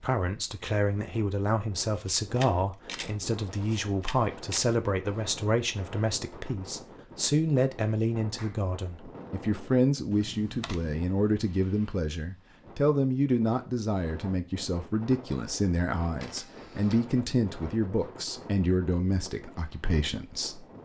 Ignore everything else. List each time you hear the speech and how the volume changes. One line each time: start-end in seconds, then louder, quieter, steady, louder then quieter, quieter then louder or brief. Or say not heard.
0.0-20.6 steady.